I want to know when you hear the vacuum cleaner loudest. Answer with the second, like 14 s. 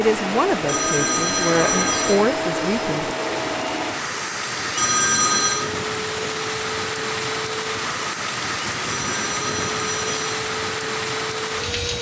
2 s.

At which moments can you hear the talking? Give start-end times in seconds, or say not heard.
0.0-3.1.